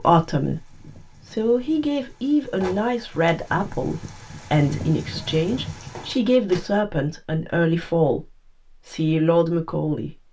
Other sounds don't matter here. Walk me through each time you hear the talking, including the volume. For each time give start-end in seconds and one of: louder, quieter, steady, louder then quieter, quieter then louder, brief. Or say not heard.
0.0-8.2 steady
8.8-10.2 brief.